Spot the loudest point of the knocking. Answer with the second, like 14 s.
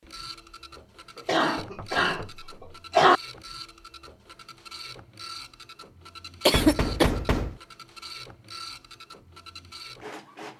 7 s.